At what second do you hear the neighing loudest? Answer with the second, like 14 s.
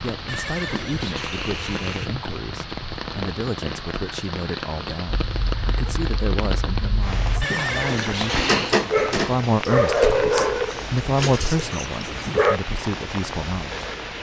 8 s.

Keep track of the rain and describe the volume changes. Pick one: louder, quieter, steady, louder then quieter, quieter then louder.
steady.